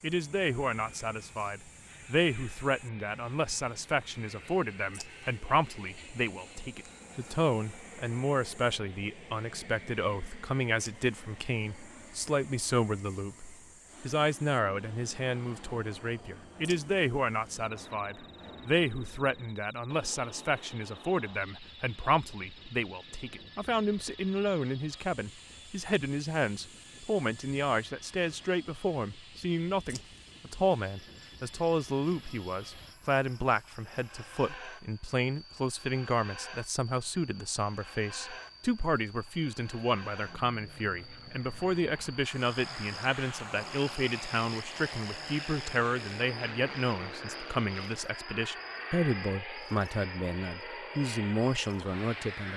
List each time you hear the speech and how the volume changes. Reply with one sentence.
The speech can be heard from 0.0 to 52.5 s, at a steady volume.